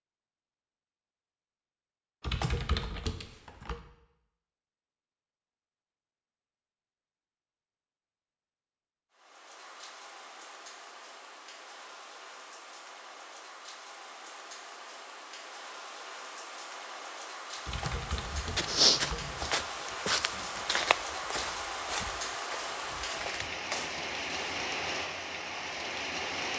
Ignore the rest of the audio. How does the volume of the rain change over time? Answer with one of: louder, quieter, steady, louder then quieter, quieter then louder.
louder.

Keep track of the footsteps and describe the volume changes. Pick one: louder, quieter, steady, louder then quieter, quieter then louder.
quieter.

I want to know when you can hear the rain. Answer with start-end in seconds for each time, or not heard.
9.1-26.5.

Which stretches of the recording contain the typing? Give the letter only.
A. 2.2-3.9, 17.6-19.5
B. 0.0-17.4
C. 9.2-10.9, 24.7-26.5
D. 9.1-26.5
A.